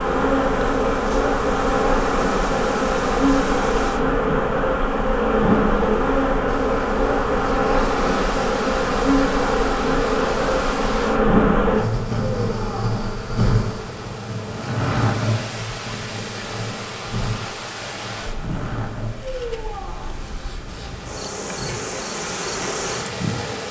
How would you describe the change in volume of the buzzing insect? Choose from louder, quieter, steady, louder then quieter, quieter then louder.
quieter.